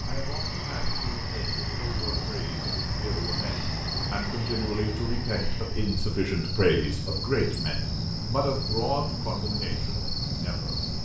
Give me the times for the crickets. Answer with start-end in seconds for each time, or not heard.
0.0-11.0.